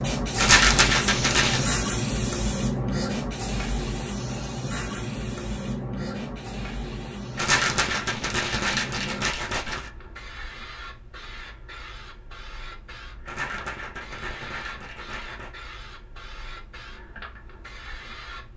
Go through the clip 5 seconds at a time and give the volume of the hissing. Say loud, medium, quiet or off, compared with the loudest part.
loud, medium, quiet, quiet.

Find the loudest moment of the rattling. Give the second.
1 s.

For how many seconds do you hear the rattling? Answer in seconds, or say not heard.
6 s.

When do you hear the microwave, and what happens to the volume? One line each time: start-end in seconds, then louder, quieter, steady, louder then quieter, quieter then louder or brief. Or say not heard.
not heard.